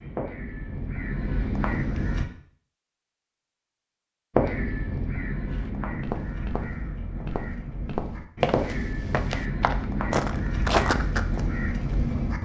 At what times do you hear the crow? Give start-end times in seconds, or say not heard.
0.0-2.2, 4.3-12.3.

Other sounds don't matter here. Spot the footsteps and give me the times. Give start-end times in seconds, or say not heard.
5.5-11.4.